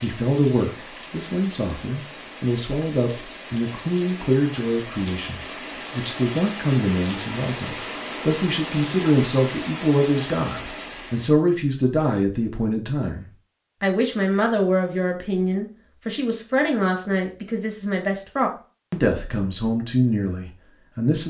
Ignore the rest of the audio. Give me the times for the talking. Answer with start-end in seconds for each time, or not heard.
0.0-21.2.